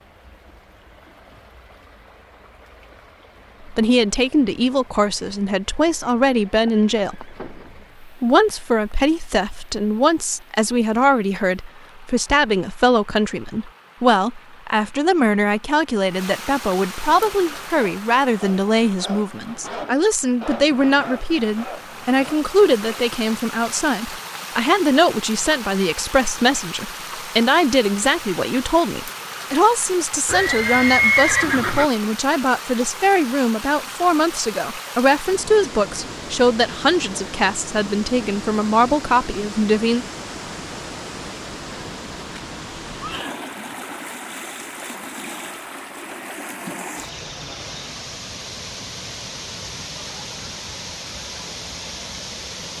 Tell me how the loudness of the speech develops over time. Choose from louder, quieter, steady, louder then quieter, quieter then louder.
steady.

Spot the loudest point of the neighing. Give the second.
31 s.